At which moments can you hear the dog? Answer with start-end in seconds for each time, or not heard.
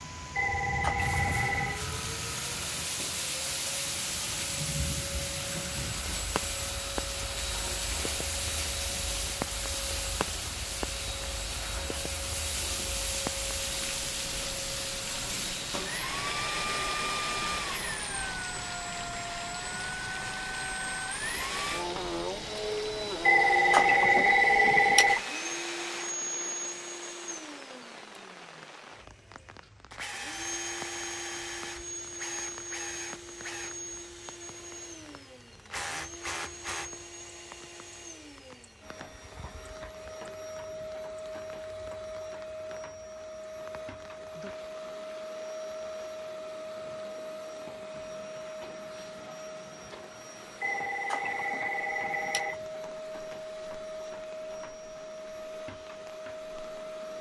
not heard.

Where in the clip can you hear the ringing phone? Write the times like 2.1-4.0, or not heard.
0.3-1.9, 23.2-25.2, 50.6-52.6.